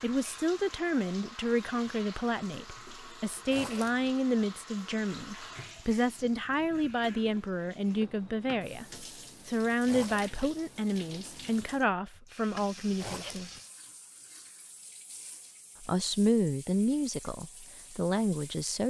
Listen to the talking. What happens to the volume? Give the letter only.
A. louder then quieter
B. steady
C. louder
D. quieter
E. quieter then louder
B.